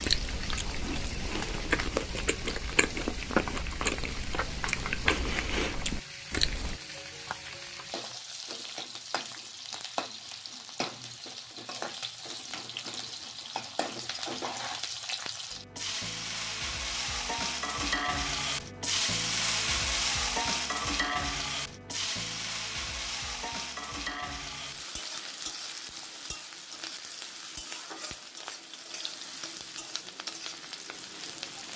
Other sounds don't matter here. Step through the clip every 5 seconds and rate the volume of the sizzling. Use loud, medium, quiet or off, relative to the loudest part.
medium, medium, medium, loud, loud, medium, medium.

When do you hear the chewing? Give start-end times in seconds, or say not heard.
0.0-6.8.